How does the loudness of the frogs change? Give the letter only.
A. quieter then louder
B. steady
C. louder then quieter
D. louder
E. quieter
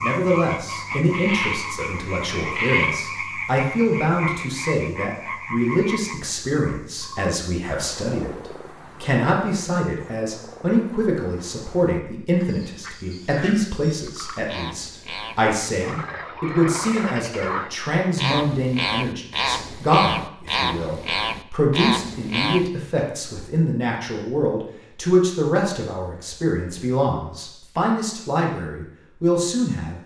A.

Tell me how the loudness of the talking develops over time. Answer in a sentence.
The loudness of the talking stays about the same.